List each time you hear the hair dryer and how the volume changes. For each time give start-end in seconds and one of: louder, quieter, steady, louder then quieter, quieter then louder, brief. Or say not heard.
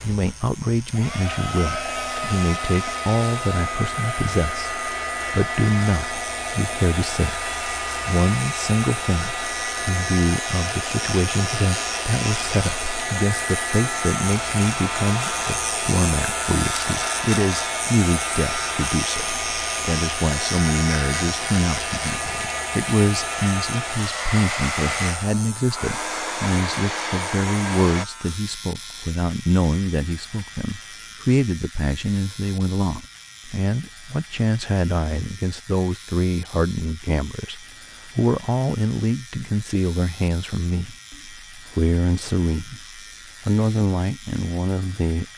0.0-28.1 steady.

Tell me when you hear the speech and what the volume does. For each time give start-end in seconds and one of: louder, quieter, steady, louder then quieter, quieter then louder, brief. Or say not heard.
0.0-45.2 steady.